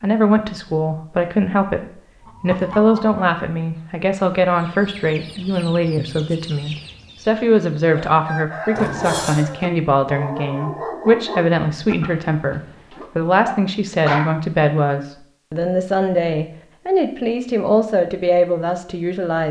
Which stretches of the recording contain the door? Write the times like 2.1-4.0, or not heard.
8.8-9.4.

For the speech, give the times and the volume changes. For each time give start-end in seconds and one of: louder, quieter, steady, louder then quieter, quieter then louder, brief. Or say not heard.
0.0-19.4 steady.